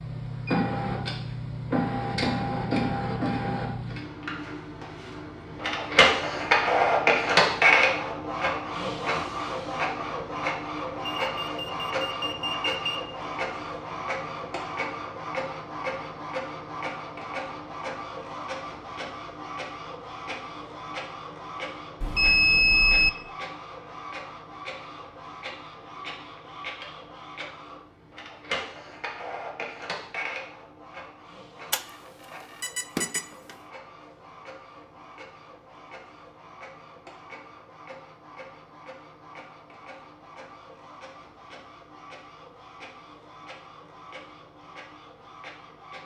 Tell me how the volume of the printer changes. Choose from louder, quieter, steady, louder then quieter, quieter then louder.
quieter.